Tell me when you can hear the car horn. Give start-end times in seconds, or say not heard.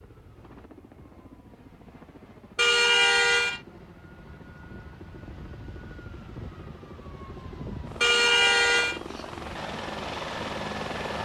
2.5-3.6, 8.0-9.0.